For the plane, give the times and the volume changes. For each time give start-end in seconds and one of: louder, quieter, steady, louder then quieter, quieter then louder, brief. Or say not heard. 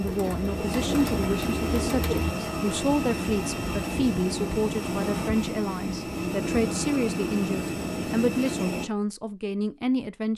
0.0-8.8 steady.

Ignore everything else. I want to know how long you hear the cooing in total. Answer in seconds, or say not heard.
2 s.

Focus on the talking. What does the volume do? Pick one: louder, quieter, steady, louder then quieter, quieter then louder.
steady.